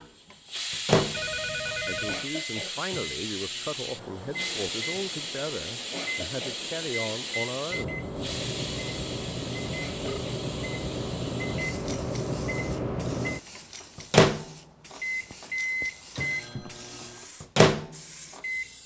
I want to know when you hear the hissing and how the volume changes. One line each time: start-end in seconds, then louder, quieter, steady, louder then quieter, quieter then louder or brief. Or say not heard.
0.0-18.8 quieter.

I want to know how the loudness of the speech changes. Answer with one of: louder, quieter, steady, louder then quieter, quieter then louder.
steady.